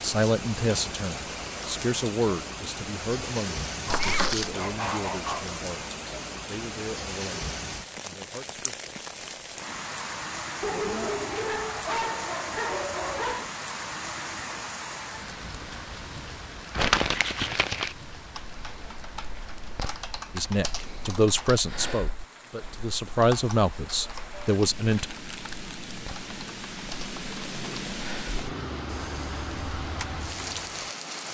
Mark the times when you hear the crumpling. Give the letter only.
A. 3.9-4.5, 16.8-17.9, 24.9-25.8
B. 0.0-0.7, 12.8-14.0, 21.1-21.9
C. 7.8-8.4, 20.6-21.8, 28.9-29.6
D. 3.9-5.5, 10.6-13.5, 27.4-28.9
A.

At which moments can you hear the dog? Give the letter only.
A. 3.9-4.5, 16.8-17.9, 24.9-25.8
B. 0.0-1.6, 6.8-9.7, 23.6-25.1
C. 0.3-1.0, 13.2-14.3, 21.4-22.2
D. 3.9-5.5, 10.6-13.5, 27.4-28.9
D.